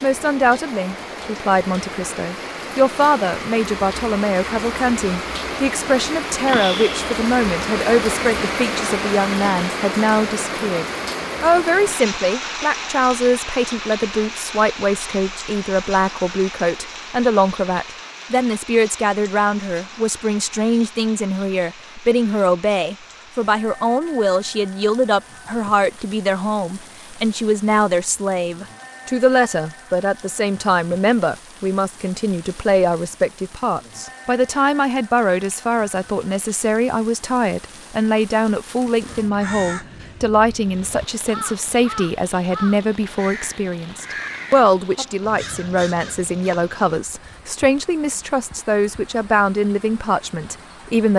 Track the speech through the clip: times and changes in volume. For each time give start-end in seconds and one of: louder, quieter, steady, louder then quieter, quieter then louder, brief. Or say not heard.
0.0-51.1 steady.